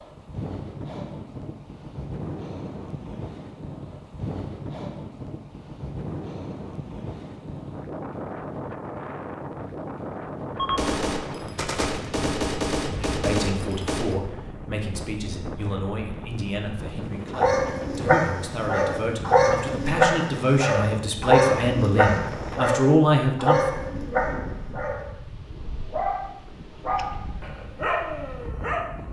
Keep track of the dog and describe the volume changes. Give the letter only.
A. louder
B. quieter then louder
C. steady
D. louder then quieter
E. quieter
E.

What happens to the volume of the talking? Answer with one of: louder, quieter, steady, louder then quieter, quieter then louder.
louder.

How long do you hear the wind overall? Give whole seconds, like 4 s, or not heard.
29 s.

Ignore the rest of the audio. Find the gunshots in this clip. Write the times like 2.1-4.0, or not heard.
10.6-14.2.